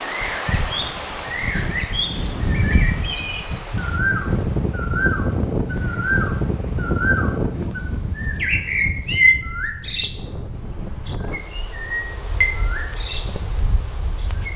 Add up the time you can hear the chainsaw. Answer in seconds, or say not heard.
not heard.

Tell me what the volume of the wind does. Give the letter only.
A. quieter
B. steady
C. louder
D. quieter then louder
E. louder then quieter
A.